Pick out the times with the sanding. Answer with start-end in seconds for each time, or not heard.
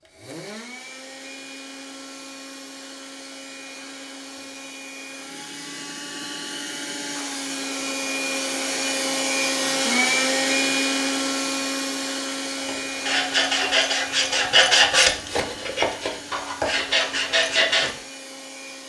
12.6-17.9.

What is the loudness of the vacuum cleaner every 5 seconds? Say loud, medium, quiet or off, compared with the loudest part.
quiet, loud, loud, quiet.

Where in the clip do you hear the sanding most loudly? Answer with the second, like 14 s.
15 s.